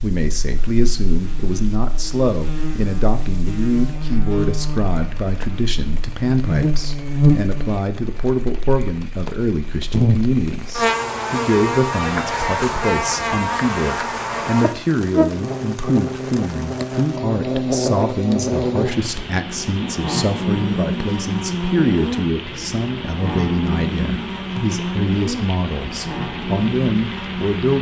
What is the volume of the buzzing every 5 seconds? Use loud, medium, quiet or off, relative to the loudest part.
medium, loud, loud, loud, loud, medium.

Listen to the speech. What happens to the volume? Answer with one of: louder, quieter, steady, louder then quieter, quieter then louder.
steady.